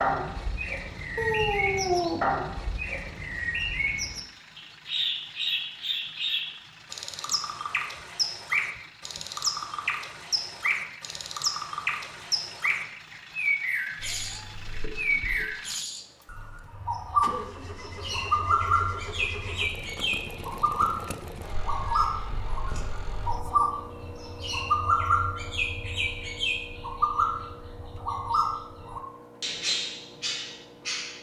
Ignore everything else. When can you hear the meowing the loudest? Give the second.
2 s.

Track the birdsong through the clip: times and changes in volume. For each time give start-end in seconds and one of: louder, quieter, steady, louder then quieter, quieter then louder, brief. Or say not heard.
0.0-31.1 steady.